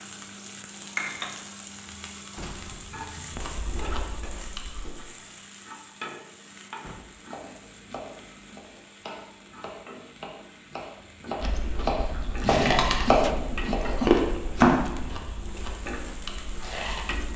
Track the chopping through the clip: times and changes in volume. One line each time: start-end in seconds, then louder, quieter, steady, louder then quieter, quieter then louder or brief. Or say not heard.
7.2-14.9 louder.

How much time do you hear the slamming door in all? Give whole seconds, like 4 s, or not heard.
2 s.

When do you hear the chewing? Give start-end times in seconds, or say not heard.
3.3-4.9, 11.4-17.3.